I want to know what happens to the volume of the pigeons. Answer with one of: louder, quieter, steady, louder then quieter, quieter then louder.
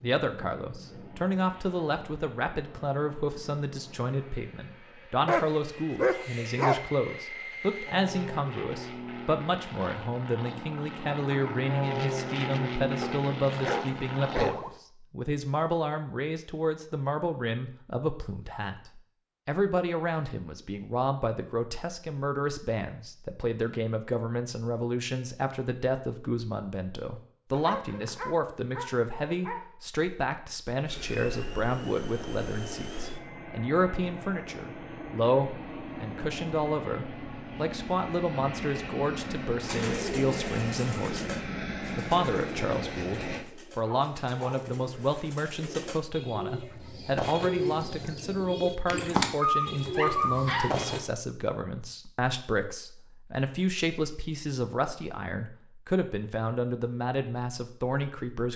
quieter then louder.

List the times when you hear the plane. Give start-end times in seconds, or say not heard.
0.0-14.5, 30.9-43.5.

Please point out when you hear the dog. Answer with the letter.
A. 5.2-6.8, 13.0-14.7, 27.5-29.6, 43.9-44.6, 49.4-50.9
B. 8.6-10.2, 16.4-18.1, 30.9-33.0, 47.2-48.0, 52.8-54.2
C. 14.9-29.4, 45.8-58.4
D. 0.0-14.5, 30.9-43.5
A.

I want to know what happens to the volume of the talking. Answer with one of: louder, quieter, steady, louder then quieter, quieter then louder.
steady.